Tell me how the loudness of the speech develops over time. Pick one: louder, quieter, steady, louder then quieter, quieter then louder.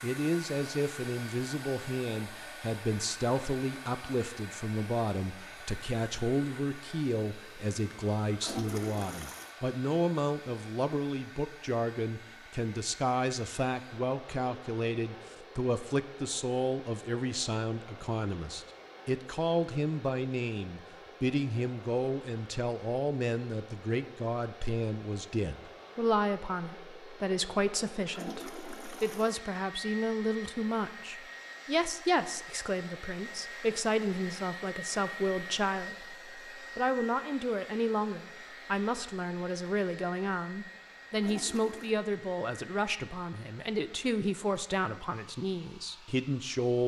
steady.